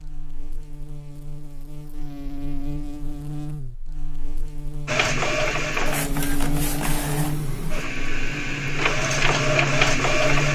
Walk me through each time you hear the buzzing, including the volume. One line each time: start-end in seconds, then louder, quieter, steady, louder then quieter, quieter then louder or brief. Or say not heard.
0.0-10.4 louder.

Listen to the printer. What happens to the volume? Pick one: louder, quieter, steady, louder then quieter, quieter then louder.
quieter then louder.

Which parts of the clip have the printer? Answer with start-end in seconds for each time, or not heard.
4.8-10.4.